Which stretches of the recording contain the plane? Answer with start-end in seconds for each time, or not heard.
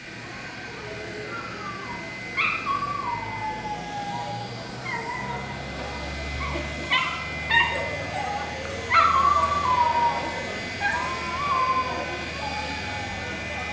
0.0-13.6.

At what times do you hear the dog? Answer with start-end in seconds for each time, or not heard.
1.2-12.9.